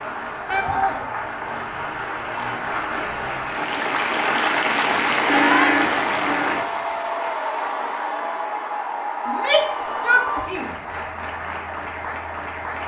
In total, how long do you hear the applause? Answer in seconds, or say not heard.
13 s.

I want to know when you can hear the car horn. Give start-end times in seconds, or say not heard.
5.2-6.7.